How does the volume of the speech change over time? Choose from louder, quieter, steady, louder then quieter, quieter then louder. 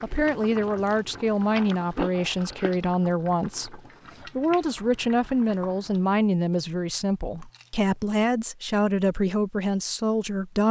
steady.